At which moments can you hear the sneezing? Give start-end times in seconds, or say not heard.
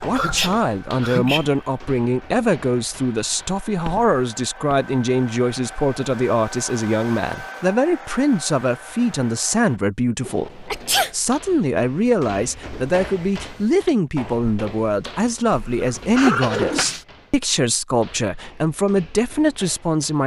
0.1-1.5, 10.2-11.1, 15.5-17.1.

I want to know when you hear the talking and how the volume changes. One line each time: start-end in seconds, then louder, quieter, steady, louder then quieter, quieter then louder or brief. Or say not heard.
0.0-20.2 steady.